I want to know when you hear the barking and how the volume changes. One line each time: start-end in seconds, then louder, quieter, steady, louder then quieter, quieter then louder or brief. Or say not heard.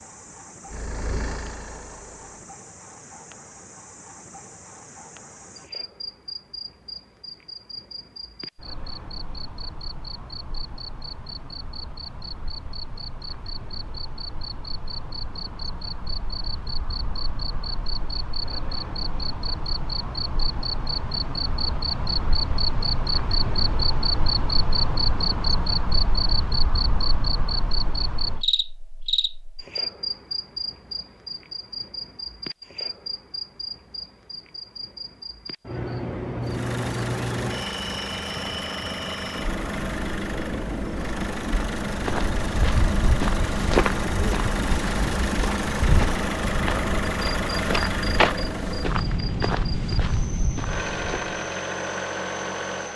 not heard.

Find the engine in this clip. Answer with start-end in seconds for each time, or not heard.
0.0-2.5, 36.4-52.9.